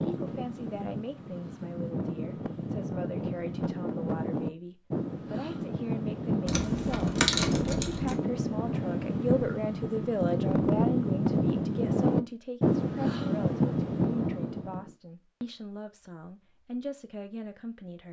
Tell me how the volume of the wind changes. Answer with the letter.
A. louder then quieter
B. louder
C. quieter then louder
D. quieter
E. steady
B.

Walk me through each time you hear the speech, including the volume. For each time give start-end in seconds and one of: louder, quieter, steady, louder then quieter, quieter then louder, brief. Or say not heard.
0.0-18.0 louder then quieter.